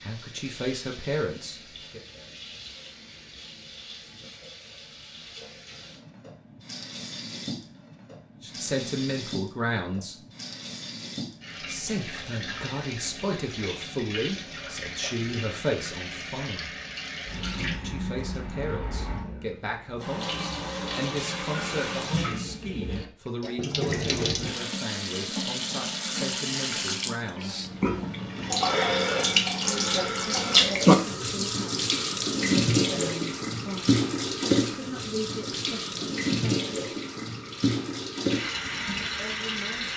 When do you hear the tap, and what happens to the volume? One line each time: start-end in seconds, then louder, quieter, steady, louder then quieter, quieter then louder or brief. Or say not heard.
0.0-39.9 louder.